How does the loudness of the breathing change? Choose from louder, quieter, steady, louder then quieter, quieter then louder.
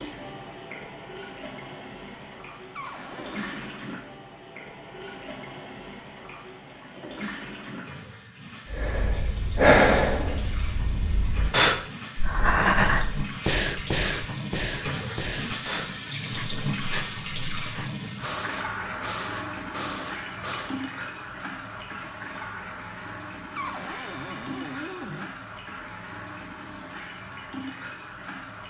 quieter then louder.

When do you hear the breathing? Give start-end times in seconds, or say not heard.
8.7-20.8.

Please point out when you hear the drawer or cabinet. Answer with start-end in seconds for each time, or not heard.
2.8-3.8, 23.6-25.3.